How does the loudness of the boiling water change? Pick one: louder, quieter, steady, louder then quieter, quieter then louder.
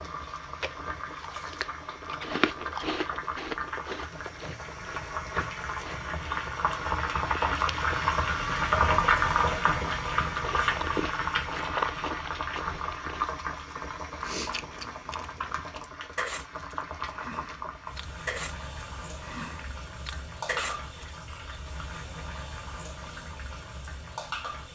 louder then quieter.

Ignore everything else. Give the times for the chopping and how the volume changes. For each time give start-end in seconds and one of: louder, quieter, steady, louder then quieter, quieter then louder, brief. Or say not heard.
not heard.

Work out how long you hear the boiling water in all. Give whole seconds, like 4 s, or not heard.
25 s.